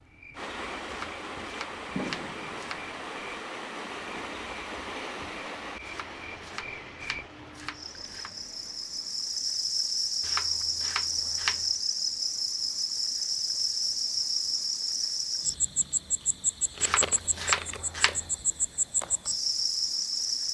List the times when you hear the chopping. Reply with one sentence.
You can hear the chopping from 0.8 to 3.0 s, from 5.8 to 8.3 s, from 10.2 to 11.7 s and from 16.8 to 18.3 s.